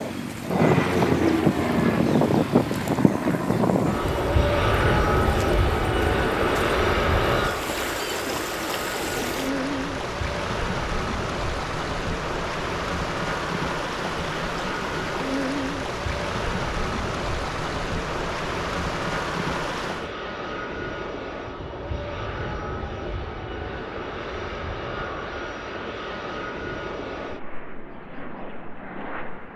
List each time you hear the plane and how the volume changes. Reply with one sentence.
You can hear the plane from 0.0 to 29.5 s, getting quieter.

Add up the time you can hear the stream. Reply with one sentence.
The stream can be heard for 20 seconds in total.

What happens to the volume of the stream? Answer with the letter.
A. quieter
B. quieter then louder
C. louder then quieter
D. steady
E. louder
E.